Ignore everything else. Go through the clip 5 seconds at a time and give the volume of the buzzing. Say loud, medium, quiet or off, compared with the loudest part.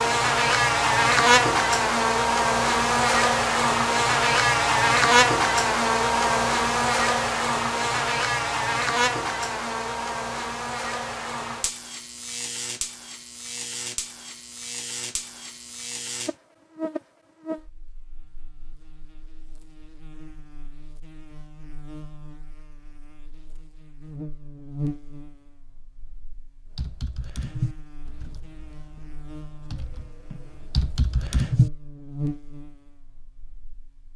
loud, loud, quiet, quiet, quiet, quiet, quiet.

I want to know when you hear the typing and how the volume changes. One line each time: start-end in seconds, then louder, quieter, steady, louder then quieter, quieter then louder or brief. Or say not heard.
26.8-31.7 quieter then louder.